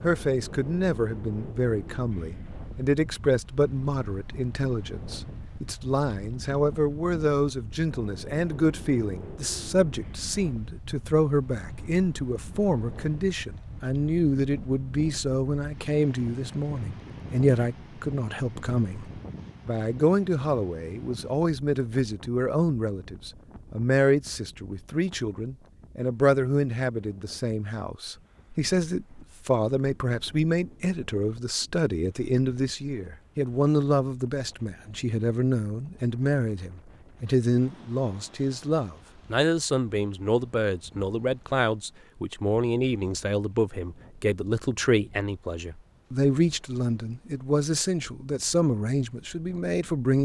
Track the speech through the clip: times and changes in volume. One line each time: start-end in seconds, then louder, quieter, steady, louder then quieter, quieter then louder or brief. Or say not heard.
0.0-50.2 steady.